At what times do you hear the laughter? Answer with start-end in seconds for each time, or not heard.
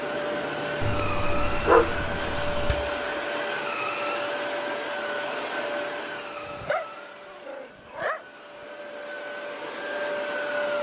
not heard.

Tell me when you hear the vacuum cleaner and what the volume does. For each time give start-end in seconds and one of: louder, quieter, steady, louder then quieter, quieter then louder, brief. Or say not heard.
0.0-10.7 quieter then louder.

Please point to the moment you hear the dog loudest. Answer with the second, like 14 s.
2 s.